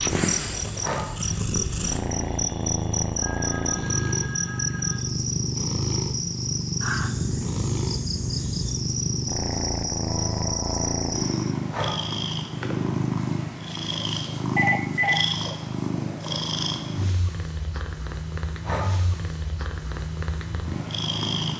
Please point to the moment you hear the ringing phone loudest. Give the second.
15 s.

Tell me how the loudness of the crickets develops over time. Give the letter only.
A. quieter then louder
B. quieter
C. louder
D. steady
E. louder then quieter
D.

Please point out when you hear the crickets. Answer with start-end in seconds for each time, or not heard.
0.0-11.6.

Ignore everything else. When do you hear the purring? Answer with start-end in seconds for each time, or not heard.
0.0-21.5.